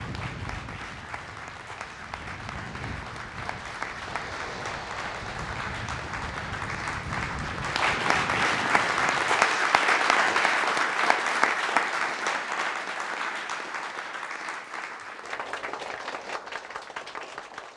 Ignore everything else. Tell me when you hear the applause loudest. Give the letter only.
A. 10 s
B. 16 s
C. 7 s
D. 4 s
A.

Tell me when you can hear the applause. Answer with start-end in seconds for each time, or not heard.
0.0-17.7.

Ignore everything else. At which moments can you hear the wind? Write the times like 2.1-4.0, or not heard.
0.0-9.5.